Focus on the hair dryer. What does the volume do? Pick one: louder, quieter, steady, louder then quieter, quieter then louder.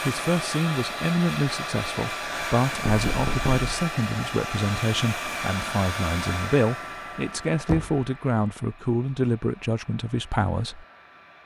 quieter.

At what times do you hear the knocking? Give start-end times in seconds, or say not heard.
2.9-3.7, 7.7-8.1.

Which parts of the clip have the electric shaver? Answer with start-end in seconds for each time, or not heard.
not heard.